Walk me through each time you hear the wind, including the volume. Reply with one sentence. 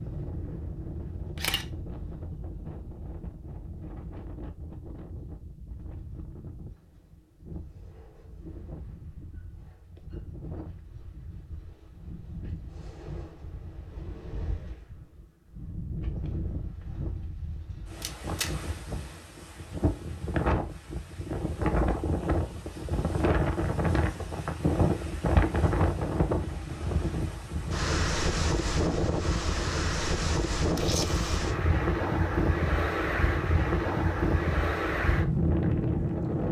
The wind can be heard from 0.0 to 36.4 s, getting louder.